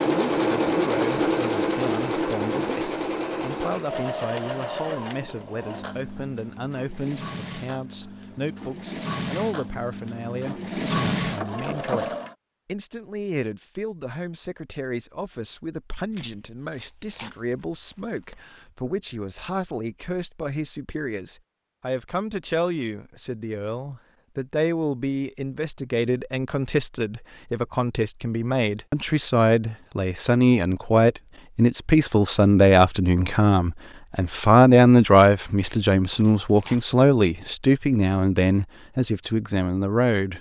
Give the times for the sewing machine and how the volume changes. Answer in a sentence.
The sewing machine can be heard from 0.0 to 12.3 s, getting quieter then louder.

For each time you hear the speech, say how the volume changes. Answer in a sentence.
The speech can be heard from 0.1 to 40.3 s, getting louder.